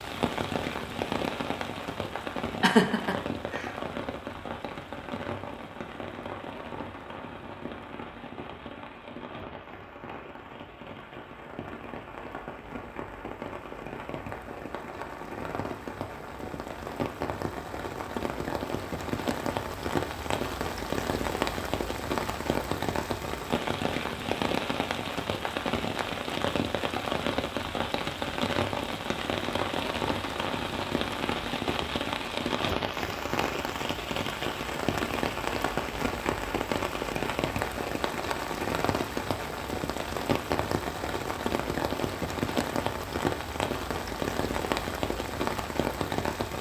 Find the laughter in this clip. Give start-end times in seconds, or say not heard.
2.6-3.7.